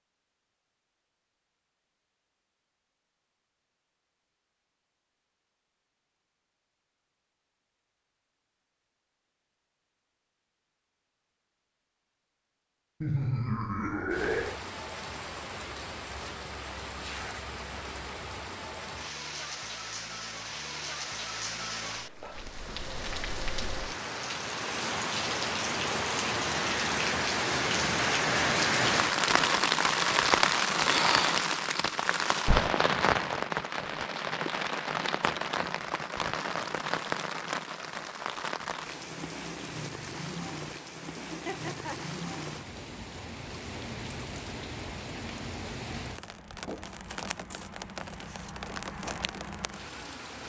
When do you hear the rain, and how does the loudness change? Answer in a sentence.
You can hear the rain from 14.1 to 50.4 s, getting louder then quieter.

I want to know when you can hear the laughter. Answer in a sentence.
The laughter can be heard from 13.0 to 14.6 s and from 41.1 to 42.1 s.